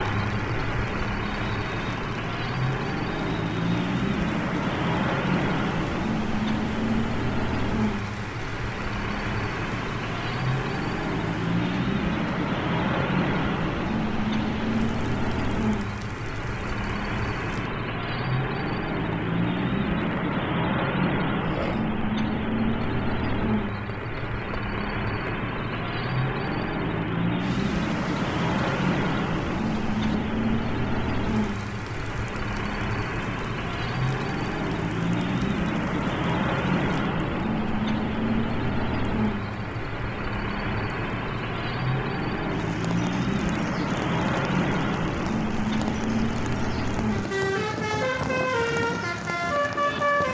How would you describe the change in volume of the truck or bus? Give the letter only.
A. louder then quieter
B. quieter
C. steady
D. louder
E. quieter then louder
C.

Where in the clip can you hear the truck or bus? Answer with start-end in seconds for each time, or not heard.
0.0-50.2.